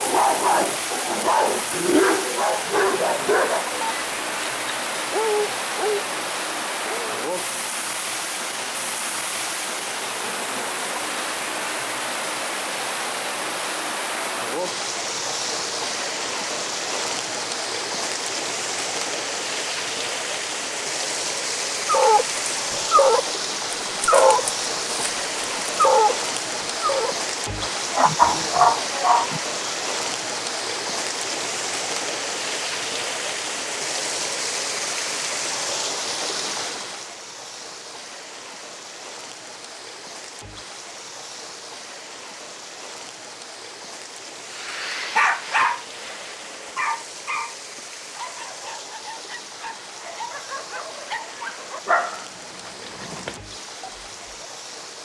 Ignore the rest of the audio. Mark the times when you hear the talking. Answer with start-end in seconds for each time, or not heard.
not heard.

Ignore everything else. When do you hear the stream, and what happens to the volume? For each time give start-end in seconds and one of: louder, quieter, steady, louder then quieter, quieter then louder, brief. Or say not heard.
0.0-54.9 quieter.